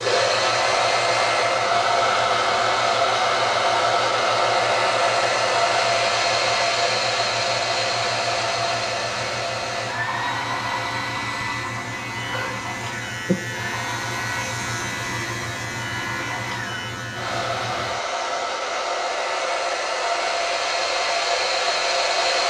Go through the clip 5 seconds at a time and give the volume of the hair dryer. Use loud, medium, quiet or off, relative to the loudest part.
loud, loud, medium, medium, loud.